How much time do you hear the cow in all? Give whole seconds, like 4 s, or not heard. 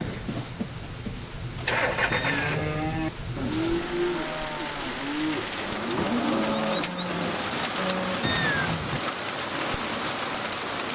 6 s.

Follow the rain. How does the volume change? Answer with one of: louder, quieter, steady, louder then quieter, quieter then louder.
louder.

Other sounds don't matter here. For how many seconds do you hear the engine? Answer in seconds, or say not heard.
3 s.